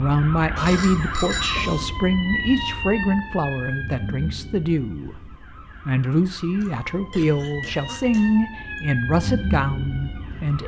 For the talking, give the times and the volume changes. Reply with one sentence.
The talking can be heard from 0.0 to 10.6 s, at a steady volume.